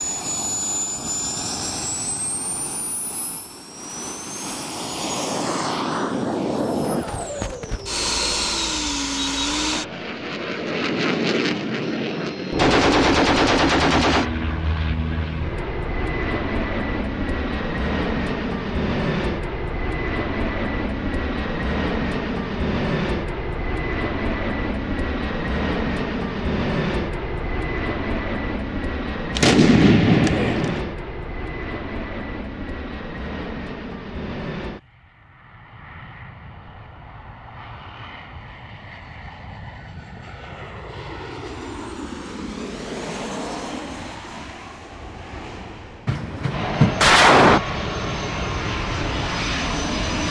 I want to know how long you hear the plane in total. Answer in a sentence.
The plane can be heard for 50 seconds in total.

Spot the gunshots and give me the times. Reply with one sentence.
The gunshots can be heard from 12.6 to 14.3 s, from 29.4 to 30.9 s and from 46.0 to 47.6 s.